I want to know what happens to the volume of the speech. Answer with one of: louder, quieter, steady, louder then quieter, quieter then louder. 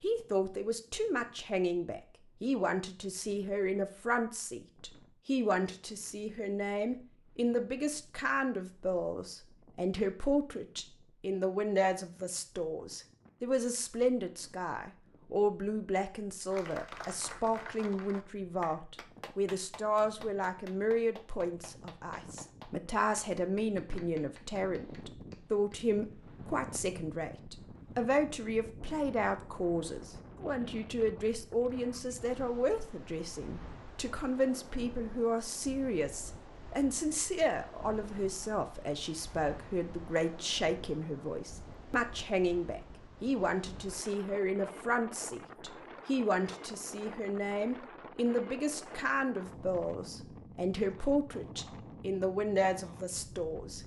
steady.